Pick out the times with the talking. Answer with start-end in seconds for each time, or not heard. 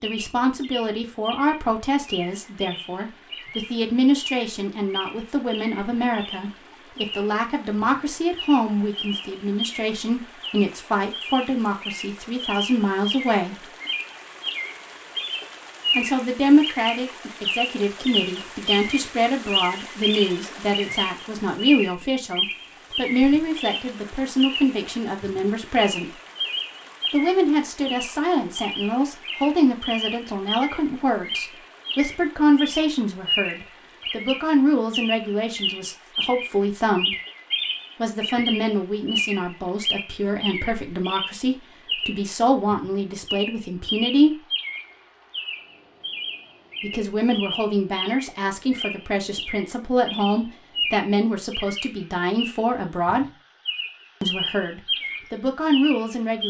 0.0-13.7, 15.9-26.1, 27.1-37.1, 38.0-44.5, 46.8-53.2, 54.2-56.4.